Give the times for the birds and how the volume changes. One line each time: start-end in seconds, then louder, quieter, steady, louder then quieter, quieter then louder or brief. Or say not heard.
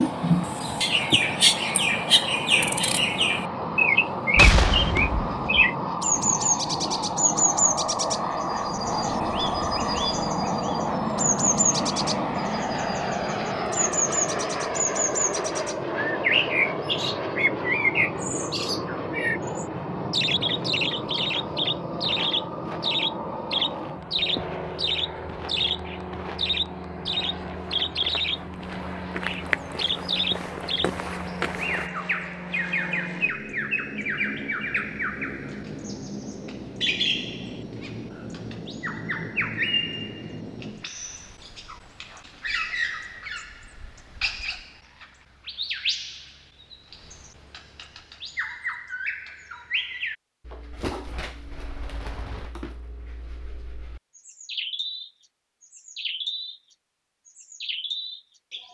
0.0-58.7 quieter.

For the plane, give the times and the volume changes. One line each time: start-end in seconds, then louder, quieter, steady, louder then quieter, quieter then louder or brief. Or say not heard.
0.0-40.9 quieter.